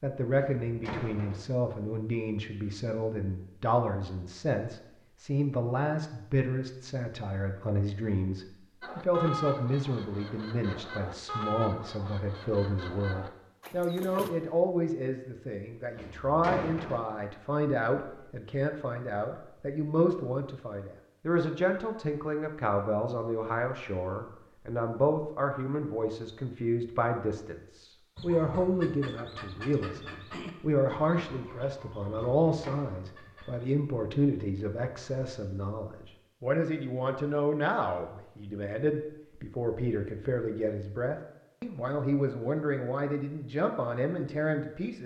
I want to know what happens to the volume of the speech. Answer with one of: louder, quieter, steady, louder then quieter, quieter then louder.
steady.